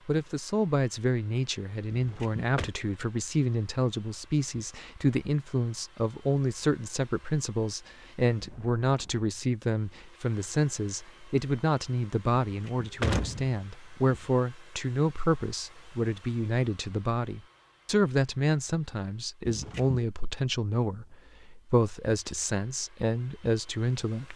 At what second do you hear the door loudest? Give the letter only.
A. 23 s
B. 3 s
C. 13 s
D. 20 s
C.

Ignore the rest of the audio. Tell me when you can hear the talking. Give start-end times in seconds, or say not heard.
0.1-24.3.